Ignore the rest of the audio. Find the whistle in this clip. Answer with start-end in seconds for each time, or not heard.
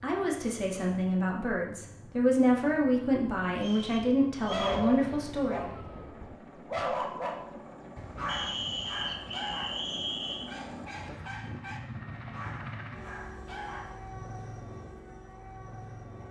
3.6-4.8, 8.2-10.5.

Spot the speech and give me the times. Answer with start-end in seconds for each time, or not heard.
0.0-5.8.